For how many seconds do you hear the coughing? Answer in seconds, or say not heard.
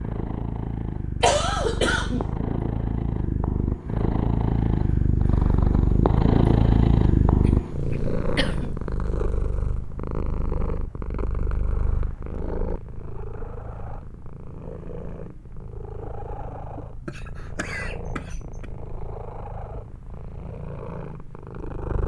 4 s.